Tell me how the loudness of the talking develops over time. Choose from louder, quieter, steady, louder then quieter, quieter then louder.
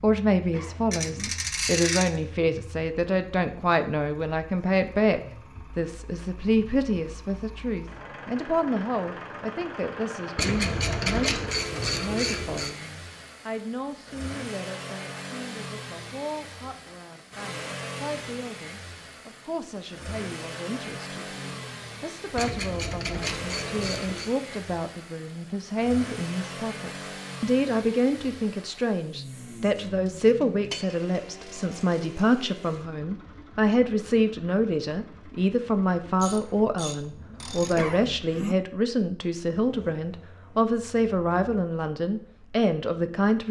quieter then louder.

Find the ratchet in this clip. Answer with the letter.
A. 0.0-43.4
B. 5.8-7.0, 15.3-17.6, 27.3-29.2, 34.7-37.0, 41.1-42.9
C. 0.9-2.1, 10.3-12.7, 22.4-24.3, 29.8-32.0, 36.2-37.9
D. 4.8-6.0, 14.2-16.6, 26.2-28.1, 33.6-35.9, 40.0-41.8
C.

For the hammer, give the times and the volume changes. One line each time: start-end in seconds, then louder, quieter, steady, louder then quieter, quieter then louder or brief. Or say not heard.
not heard.